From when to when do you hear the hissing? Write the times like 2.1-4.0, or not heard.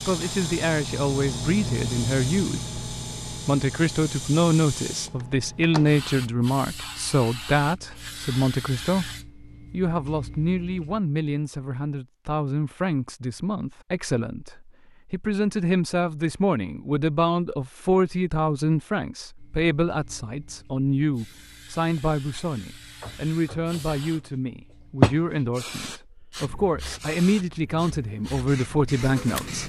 0.0-11.0, 19.4-29.6.